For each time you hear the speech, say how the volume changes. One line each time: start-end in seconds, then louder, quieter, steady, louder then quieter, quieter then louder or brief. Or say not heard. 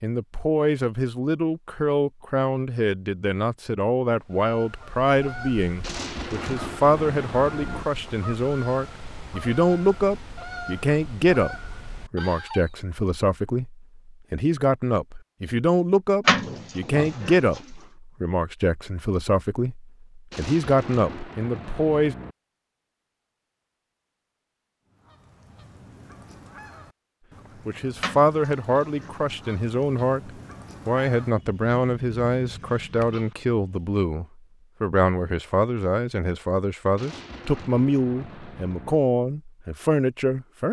0.0-22.1 steady
27.6-40.6 steady.